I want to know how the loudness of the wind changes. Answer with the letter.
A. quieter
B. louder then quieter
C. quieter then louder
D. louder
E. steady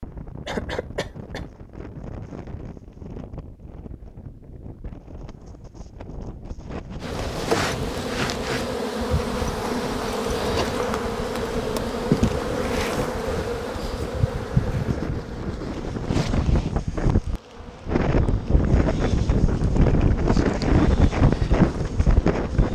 D.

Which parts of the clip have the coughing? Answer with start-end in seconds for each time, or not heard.
0.5-1.5.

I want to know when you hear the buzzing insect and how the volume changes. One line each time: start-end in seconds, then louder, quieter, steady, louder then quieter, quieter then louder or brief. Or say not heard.
7.0-22.7 quieter.